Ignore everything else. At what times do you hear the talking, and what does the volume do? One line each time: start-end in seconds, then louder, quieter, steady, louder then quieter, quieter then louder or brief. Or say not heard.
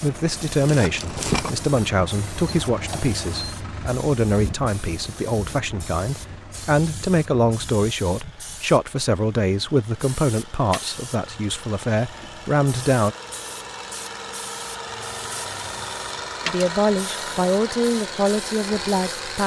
0.0-13.2 steady
16.4-19.4 brief.